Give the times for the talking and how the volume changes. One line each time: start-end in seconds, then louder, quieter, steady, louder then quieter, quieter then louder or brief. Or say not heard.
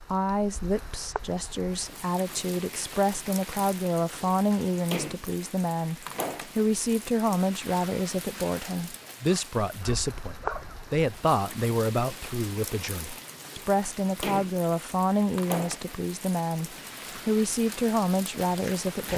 0.0-19.1 steady.